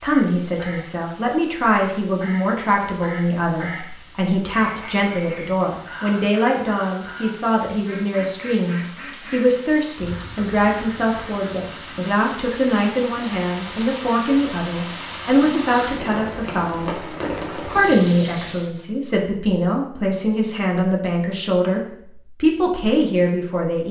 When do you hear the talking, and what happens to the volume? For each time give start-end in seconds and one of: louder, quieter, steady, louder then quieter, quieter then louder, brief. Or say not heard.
0.0-23.8 steady.